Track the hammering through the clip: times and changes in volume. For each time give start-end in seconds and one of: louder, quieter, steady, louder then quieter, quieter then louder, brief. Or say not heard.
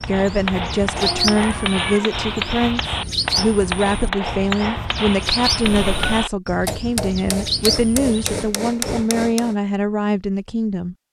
0.0-9.6 steady.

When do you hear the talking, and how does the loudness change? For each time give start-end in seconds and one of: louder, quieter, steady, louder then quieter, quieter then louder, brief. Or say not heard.
0.0-10.9 steady.